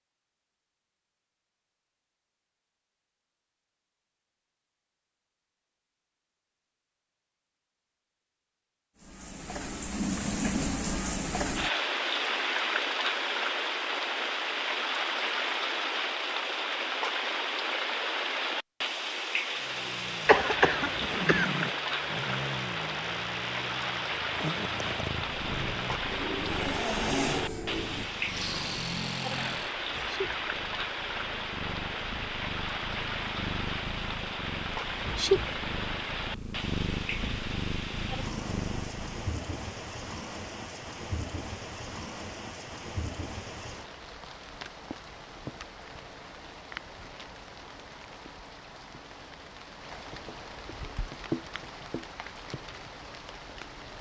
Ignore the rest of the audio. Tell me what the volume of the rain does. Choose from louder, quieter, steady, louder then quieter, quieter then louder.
quieter.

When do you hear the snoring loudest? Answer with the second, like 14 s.
27 s.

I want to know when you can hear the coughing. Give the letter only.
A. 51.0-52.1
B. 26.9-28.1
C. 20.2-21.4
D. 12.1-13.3
C.